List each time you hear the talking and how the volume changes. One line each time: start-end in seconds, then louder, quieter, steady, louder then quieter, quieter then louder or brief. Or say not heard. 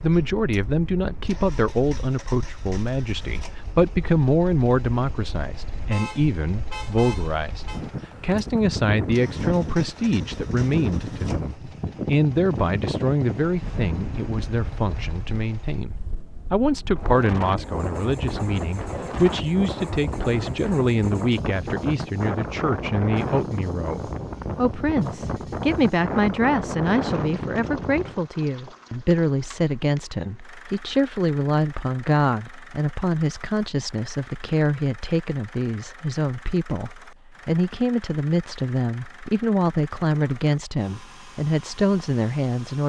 0.0-42.8 steady.